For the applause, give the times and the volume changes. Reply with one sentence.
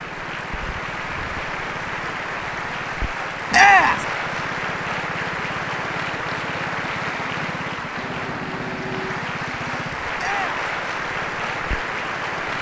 The applause can be heard from 0.0 to 12.5 s, at a steady volume.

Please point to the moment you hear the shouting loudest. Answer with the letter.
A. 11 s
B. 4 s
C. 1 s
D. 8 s
B.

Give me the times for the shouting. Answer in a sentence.
The shouting can be heard from 3.5 to 4.0 s and from 10.2 to 10.6 s.